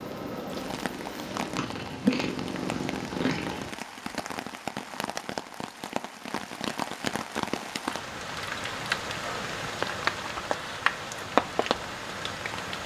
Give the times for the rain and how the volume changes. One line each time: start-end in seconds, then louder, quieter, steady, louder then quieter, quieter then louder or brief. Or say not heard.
0.0-12.8 louder.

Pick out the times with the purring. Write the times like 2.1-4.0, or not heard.
0.0-3.7.